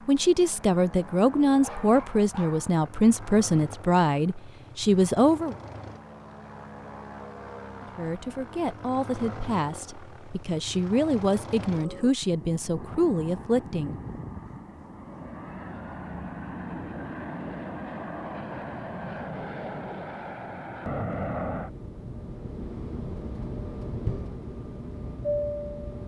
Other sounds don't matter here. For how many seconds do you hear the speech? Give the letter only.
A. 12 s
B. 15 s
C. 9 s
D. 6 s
A.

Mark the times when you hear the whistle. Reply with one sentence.
You can't hear the whistle here.